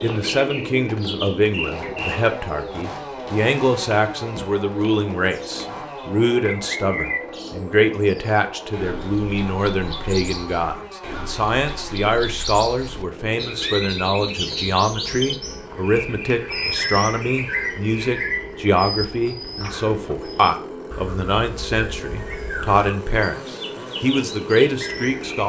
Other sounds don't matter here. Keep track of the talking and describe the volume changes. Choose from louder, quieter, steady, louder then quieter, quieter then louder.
steady.